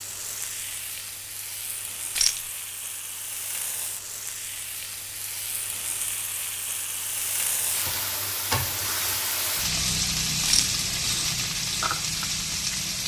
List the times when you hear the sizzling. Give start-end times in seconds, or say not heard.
0.0-13.0.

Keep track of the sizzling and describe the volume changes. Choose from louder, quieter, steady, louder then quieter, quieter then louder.
louder.